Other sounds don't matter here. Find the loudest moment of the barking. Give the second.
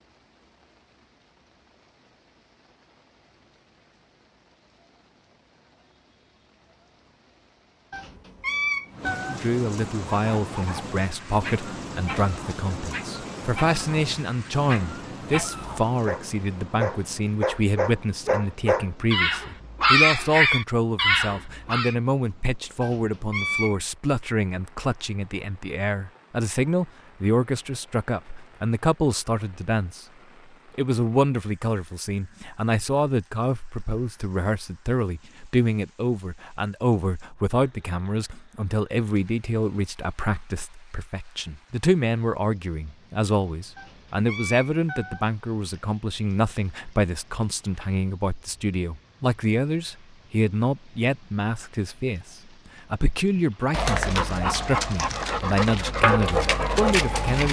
20 s.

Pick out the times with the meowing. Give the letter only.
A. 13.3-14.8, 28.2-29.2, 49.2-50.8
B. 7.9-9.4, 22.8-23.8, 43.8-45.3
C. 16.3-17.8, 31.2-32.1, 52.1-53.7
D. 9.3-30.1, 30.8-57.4
B.